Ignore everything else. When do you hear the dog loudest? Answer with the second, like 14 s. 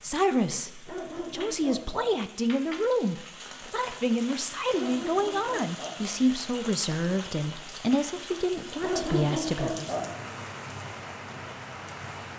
9 s.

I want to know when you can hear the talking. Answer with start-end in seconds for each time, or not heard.
0.0-9.9.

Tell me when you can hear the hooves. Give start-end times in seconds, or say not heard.
not heard.